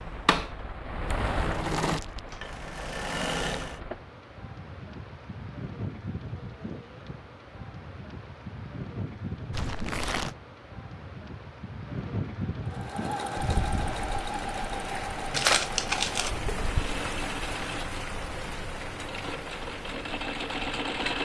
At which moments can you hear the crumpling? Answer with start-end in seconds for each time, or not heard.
1.7-2.2, 9.5-10.3, 15.3-16.3.